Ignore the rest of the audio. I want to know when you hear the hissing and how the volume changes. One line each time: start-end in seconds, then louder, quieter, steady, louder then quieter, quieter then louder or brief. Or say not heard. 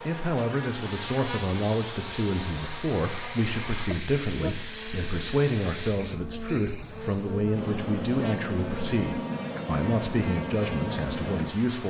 0.0-11.8 steady.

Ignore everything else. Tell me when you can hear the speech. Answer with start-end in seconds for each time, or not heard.
0.0-11.8.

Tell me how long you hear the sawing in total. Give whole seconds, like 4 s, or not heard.
not heard.